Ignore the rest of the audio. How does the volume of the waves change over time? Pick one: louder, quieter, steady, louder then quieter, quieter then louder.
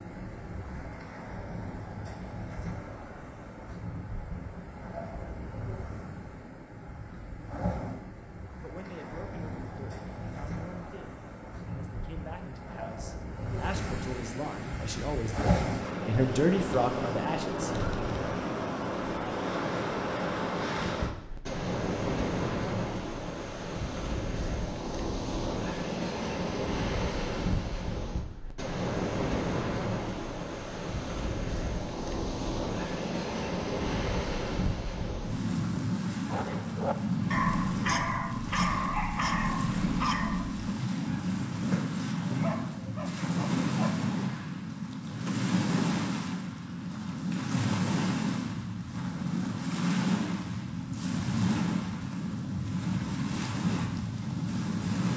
louder.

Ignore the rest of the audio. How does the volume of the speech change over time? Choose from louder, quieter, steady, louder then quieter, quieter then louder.
louder.